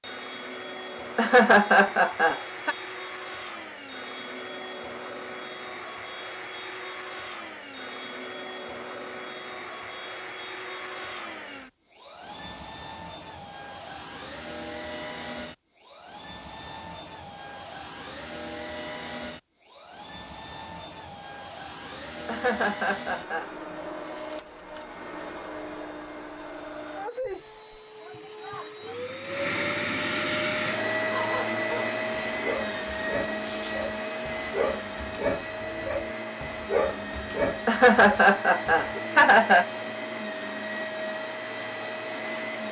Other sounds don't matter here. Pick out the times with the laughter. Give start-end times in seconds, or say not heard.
1.1-2.8, 22.2-23.5, 37.6-39.6.